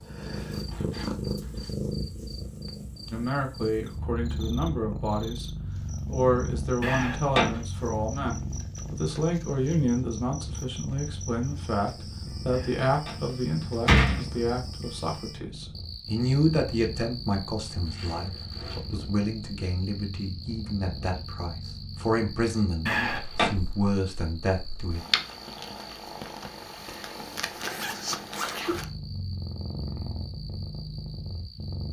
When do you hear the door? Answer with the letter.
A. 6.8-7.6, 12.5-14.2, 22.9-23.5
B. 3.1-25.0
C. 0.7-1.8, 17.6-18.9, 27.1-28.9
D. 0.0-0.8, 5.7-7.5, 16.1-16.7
A.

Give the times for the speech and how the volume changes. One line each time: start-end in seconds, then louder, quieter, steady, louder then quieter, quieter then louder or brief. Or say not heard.
3.1-25.0 steady.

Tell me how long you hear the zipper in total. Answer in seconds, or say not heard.
4 s.